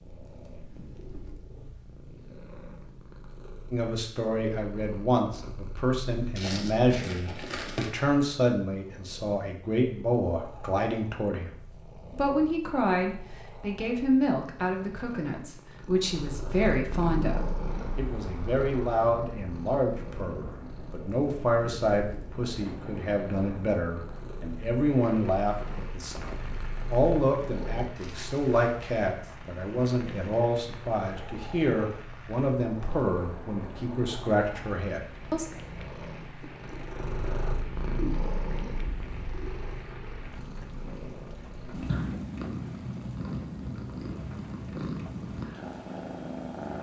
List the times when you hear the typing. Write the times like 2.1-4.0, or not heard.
not heard.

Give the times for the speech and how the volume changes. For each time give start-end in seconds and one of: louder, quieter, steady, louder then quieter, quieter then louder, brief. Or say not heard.
3.7-35.5 steady.